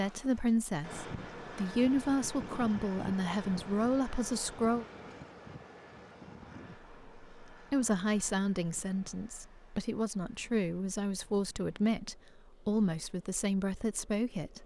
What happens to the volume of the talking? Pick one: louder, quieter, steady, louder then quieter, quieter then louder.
steady.